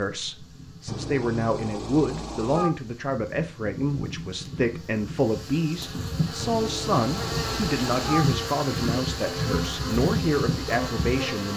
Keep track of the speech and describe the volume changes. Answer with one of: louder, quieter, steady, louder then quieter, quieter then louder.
steady.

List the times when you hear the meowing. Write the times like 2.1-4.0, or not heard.
0.8-2.7, 6.3-8.2.